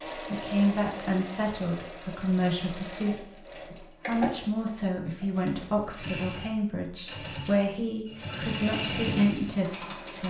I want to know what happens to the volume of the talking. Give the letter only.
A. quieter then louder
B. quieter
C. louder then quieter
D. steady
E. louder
D.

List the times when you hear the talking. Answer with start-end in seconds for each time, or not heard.
0.3-3.4, 4.0-10.2.